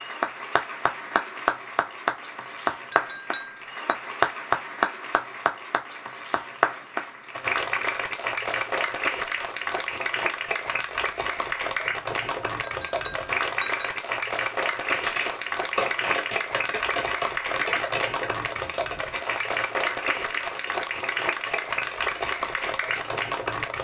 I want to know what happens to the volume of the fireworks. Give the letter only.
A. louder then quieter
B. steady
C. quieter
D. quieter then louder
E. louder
C.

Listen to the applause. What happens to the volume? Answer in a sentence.
The loudness of the applause stays about the same.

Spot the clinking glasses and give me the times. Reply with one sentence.
You can hear the clinking glasses from 2.9 to 4.0 s and from 12.6 to 13.8 s.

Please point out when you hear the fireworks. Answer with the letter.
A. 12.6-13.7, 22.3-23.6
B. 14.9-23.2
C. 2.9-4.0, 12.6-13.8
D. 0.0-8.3
B.